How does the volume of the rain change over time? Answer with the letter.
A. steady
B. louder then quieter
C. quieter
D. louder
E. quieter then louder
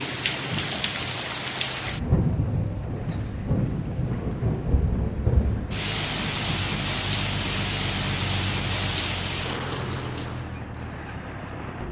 A.